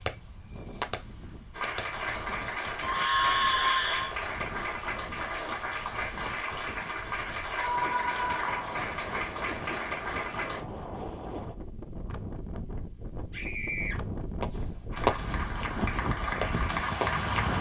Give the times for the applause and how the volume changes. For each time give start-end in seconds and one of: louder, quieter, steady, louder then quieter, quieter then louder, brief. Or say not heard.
1.5-10.7 steady
14.9-17.5 brief.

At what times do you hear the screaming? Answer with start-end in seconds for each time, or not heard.
2.8-4.2, 7.5-8.8, 13.3-13.9.